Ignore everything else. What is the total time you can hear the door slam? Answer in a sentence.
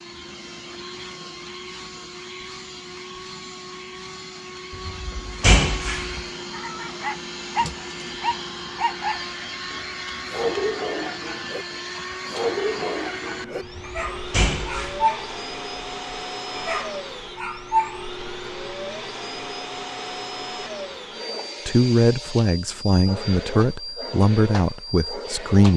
You can hear the door slam for 3 seconds altogether.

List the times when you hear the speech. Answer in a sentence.
The speech can be heard from 21.6 to 25.7 s.